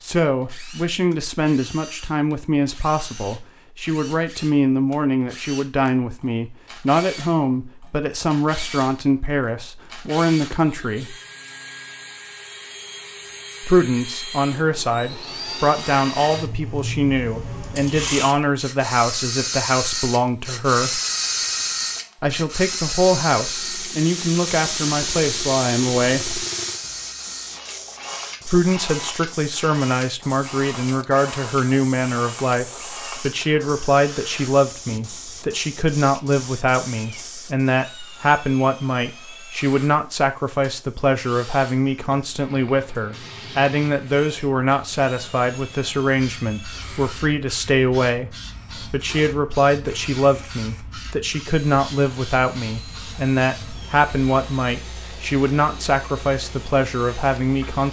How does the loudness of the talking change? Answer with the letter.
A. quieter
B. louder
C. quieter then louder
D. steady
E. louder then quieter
D.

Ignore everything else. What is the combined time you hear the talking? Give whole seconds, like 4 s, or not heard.
52 s.